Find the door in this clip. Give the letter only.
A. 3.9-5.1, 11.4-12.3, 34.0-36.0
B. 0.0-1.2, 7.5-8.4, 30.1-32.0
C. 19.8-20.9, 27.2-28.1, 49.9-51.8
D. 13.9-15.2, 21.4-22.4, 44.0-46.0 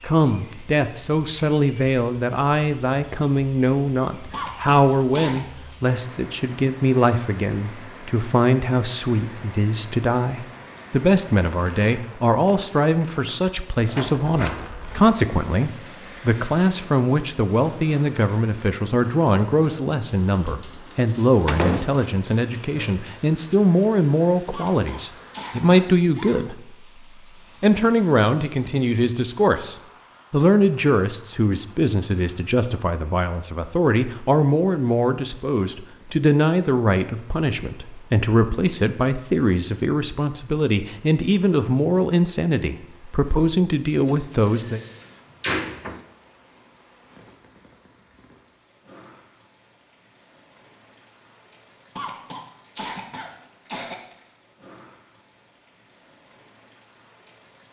D.